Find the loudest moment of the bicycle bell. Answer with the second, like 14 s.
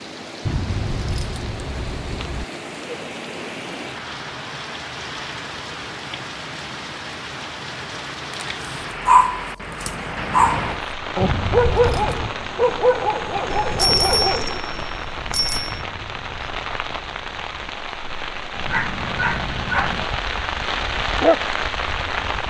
14 s.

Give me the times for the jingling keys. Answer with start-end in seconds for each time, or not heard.
0.5-2.5, 11.2-12.3, 15.7-17.7.